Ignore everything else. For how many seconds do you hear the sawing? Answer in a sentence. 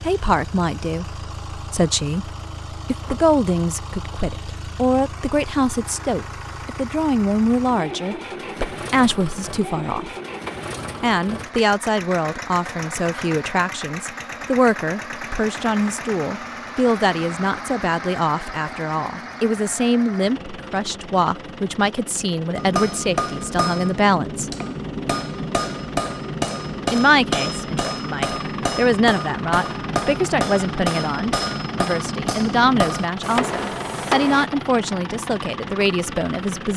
You can't hear the sawing here.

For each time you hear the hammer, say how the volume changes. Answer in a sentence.
The hammer can be heard from 22.6 to 34.5 s, at a steady volume.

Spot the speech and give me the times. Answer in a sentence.
You can hear the speech from 0.0 to 10.2 s, from 11.0 to 24.5 s and from 26.9 to 36.7 s.